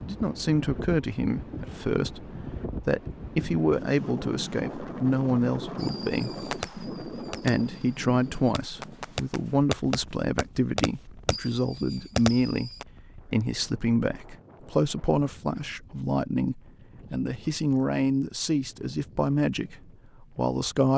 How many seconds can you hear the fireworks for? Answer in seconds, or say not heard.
7 s.